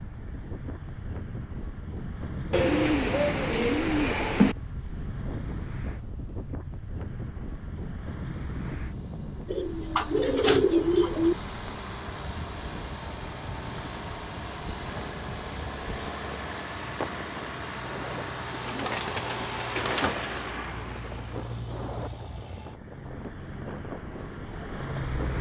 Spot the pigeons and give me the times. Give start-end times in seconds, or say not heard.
2.5-4.5, 9.4-11.3, 18.5-20.3.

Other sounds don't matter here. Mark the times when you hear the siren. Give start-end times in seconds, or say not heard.
not heard.